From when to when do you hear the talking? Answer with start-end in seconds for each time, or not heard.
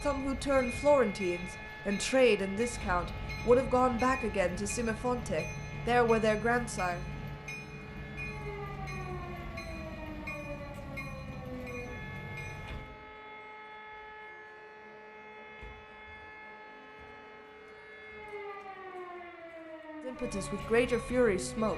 0.0-7.0, 20.1-21.7.